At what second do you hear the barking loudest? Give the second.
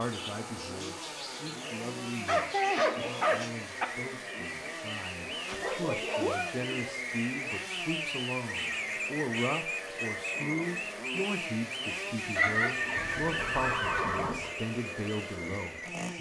3 s.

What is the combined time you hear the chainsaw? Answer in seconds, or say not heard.
16 s.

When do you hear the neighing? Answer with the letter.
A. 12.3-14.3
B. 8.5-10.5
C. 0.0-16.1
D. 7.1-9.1
A.